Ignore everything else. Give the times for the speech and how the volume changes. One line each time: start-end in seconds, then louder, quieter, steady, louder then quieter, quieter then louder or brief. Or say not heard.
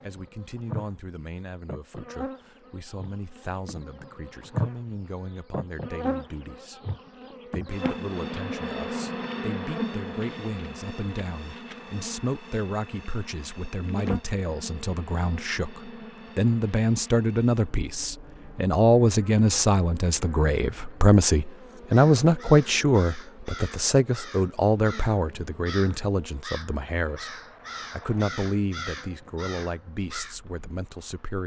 0.0-31.4 louder then quieter.